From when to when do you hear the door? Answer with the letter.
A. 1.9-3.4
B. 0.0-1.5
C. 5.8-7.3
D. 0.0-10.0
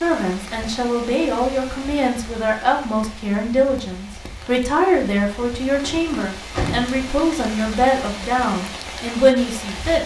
C.